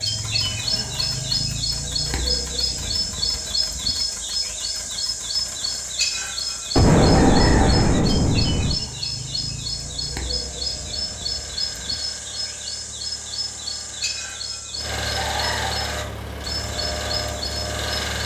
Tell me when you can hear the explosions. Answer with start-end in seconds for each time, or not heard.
6.8-8.8.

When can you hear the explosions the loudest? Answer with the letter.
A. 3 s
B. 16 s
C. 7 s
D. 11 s
C.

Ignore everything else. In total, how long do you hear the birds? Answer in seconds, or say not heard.
18 s.